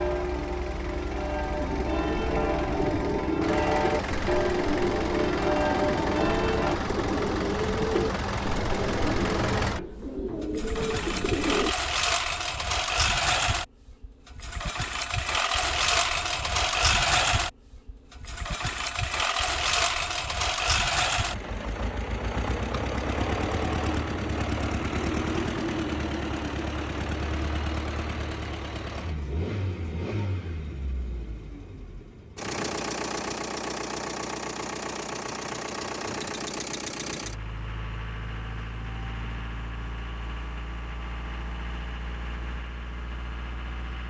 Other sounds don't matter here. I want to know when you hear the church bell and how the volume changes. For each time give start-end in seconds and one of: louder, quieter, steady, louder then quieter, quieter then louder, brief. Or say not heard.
0.0-6.8 louder.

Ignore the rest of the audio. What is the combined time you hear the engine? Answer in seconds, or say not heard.
44 s.